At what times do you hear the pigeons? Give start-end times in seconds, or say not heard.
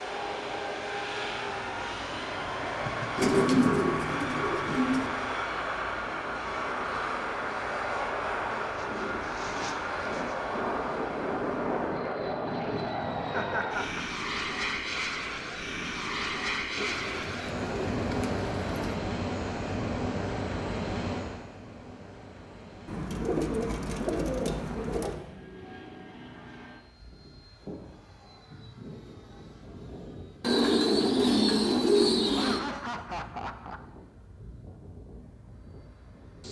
3.1-5.1, 8.5-10.4, 16.8-19.0, 22.9-25.1, 30.4-32.6.